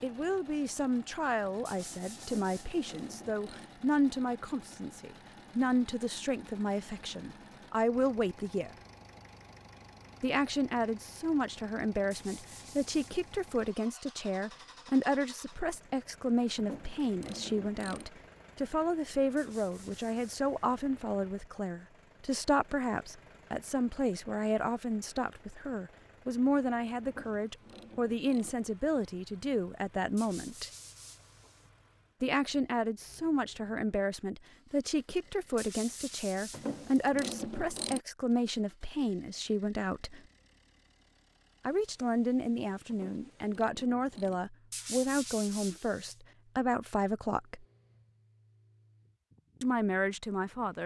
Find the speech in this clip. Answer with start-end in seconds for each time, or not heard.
0.0-8.8, 10.2-30.7, 32.2-40.2, 41.6-47.6, 49.6-50.8.